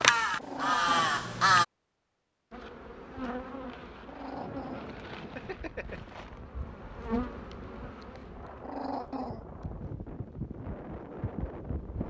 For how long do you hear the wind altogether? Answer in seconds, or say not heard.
8 s.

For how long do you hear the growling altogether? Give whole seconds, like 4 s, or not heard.
4 s.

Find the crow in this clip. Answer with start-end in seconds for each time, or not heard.
0.0-1.6.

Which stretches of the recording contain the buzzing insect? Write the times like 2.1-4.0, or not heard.
2.5-12.0.